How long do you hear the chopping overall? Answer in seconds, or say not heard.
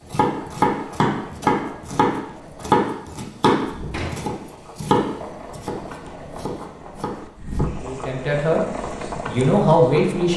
8 s.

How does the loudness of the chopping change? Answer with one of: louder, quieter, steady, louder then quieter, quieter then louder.
quieter.